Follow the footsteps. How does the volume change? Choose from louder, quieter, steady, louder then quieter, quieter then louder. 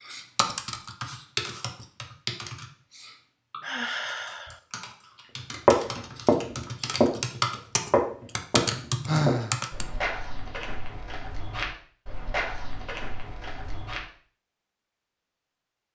quieter.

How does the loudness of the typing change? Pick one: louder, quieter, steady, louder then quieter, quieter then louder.
quieter then louder.